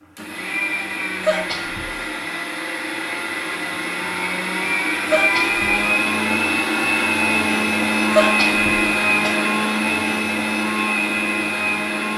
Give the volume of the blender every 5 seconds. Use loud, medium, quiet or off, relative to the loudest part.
medium, loud, loud.